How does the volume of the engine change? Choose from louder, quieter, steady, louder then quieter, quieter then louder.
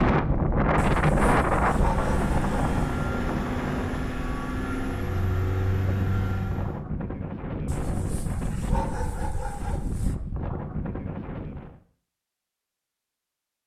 steady.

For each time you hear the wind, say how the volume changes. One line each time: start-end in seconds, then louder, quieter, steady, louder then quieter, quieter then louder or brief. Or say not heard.
0.0-11.8 quieter.